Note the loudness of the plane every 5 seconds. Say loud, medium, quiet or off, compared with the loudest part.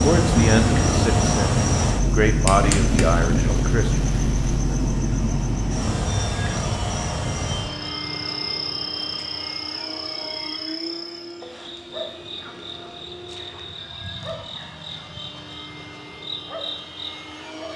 loud, medium, quiet, quiet.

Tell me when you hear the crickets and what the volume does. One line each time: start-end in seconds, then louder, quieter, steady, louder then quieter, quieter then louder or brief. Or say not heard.
0.0-17.7 quieter.